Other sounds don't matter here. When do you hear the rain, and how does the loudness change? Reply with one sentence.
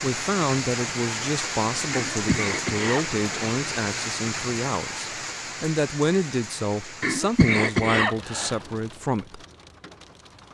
The rain can be heard from 0.0 to 10.4 s, getting quieter.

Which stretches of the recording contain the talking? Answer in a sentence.
The talking can be heard from 0.0 to 9.4 s.